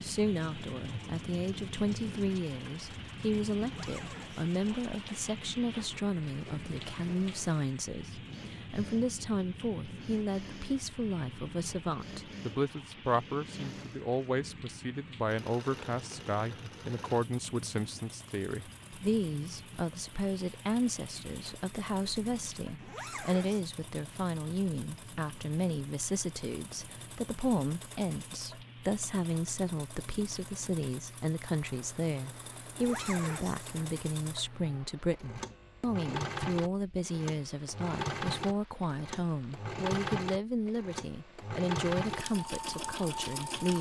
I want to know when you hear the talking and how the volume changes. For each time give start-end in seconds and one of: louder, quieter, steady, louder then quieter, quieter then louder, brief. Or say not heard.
0.0-43.7 steady.